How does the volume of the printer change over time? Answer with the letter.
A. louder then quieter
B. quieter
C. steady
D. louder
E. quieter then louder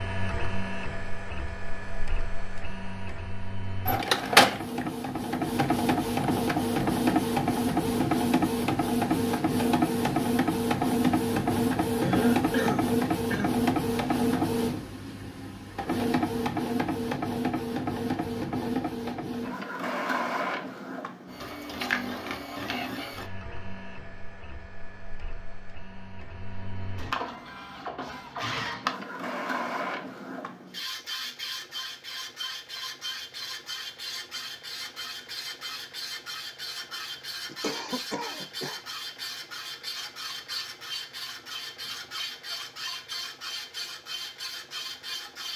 B.